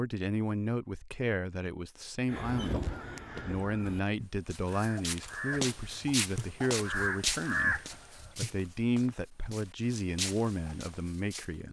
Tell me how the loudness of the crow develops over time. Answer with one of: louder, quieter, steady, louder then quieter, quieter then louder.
quieter then louder.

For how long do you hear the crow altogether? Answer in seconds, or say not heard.
6 s.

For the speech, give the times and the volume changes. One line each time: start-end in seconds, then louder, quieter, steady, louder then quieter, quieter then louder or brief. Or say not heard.
0.0-11.6 steady.